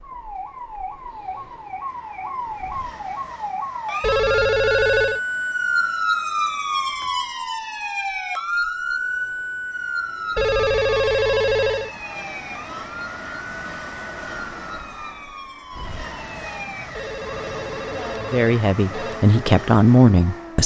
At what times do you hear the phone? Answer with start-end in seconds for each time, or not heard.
4.0-5.2, 10.3-11.9, 16.9-19.2.